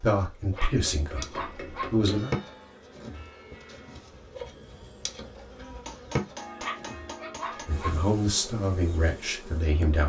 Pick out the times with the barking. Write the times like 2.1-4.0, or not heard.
0.6-1.9, 6.6-8.0.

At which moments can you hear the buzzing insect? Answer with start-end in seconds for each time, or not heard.
0.0-10.0.